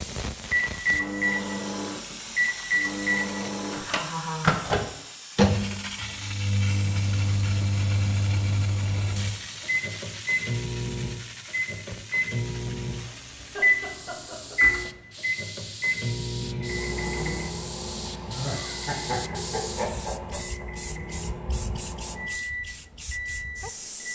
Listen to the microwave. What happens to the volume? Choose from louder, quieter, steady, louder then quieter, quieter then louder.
quieter.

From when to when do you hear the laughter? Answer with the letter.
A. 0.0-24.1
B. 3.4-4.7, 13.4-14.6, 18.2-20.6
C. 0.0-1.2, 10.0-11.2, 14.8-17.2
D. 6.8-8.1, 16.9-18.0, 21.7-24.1
B.